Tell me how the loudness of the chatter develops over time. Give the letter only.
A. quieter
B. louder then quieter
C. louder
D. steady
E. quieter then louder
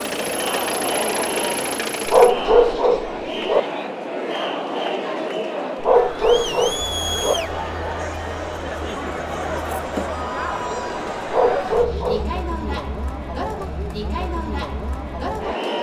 D.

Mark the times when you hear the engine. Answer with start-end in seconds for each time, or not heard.
0.0-2.4.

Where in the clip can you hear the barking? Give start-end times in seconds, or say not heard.
2.0-3.6, 5.8-7.3, 11.2-12.8.